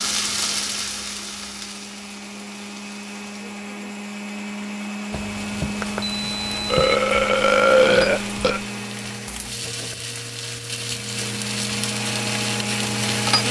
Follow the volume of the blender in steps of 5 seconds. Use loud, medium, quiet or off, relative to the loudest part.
medium, loud, loud.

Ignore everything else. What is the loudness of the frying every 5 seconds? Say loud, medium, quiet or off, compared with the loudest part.
loud, medium, loud.